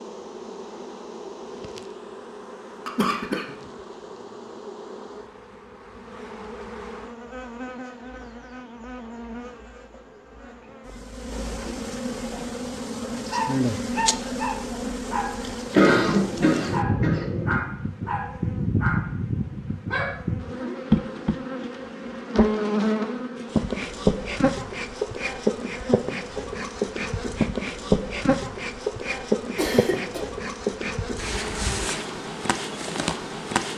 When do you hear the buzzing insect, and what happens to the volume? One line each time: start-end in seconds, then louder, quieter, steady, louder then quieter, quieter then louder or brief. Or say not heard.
0.0-33.7 louder.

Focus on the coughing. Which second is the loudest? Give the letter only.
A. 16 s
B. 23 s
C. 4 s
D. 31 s
A.